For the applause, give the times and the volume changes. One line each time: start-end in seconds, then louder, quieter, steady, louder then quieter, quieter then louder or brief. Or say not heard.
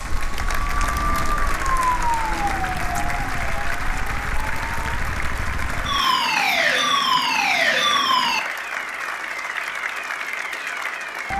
0.0-11.3 steady.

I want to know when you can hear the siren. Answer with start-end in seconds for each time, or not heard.
0.0-11.3.